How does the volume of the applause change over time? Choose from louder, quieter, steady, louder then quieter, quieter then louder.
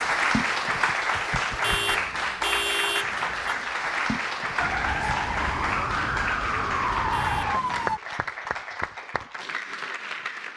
quieter.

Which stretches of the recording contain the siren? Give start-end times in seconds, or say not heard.
4.5-8.0.